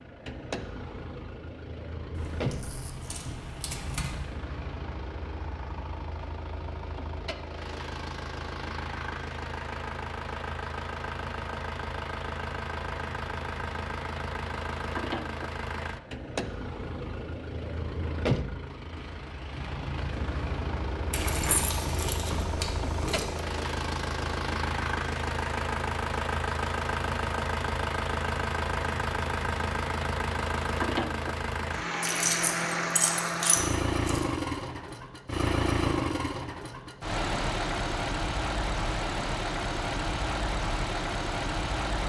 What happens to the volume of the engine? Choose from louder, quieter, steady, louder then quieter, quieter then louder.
louder.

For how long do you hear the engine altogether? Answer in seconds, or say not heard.
42 s.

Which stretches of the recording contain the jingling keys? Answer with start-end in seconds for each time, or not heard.
2.1-4.2, 21.1-23.4, 32.0-34.2.